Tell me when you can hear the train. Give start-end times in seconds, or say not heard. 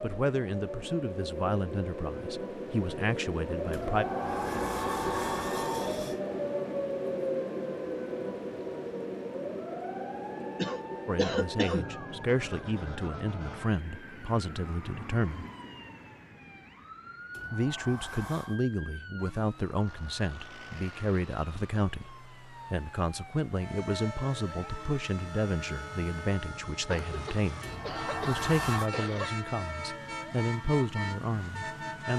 23.6-32.1.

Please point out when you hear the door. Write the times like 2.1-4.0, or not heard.
3.7-6.2, 17.3-18.6, 27.6-28.9.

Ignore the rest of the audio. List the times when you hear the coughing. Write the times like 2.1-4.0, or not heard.
10.6-11.8, 26.9-29.4.